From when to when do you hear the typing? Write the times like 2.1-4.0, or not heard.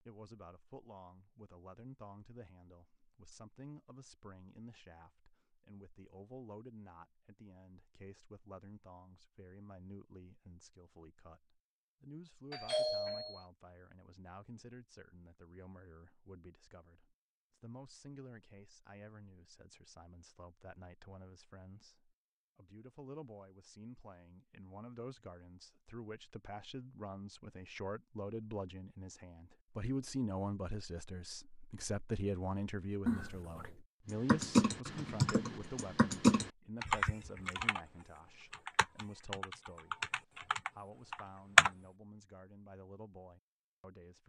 34.1-37.8, 38.5-41.7.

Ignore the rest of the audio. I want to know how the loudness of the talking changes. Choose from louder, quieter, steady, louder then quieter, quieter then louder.
louder then quieter.